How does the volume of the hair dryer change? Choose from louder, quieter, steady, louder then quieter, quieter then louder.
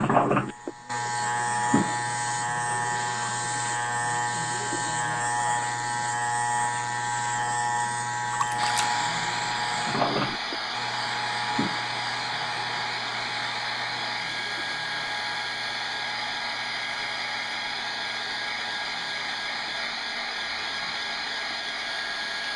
steady.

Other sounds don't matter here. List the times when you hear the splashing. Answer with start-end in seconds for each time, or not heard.
8.3-8.9.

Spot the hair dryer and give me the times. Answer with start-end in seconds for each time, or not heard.
8.6-22.5.